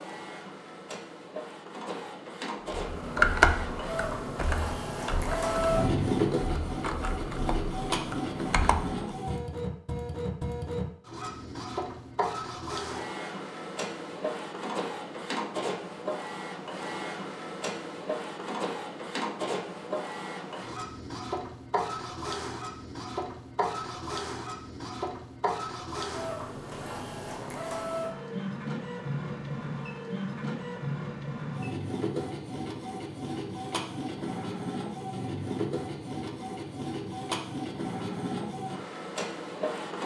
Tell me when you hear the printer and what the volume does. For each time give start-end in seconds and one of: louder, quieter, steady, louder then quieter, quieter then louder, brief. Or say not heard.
0.0-40.0 steady.